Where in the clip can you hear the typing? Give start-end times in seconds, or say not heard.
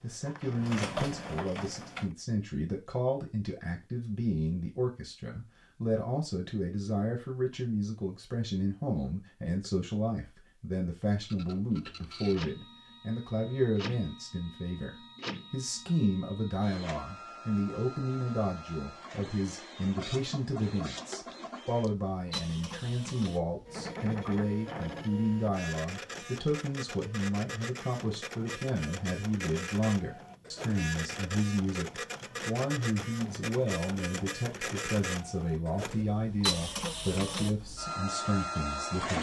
not heard.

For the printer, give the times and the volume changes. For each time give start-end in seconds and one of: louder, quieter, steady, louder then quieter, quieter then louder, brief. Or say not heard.
0.0-2.1 brief
11.2-39.1 louder.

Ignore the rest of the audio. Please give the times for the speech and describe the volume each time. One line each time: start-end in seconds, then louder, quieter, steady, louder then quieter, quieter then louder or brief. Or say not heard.
0.0-39.1 steady.